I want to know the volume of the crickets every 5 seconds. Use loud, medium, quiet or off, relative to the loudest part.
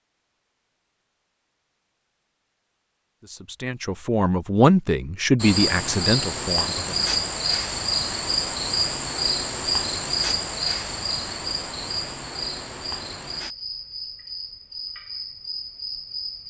off, loud, medium, medium.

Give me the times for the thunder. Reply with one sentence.
The thunder can't be heard in this clip.